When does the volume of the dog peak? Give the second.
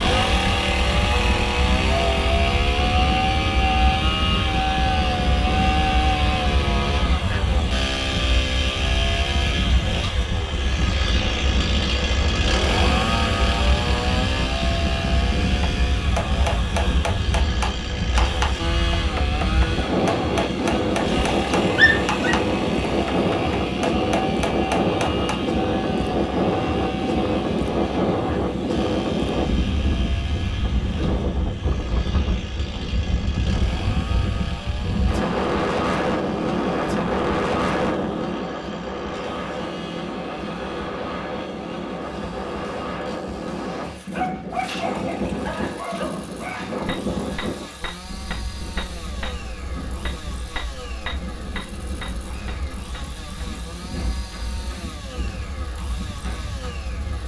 22 s.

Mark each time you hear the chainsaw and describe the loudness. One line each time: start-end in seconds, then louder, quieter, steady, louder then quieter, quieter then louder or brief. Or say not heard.
0.0-57.2 quieter.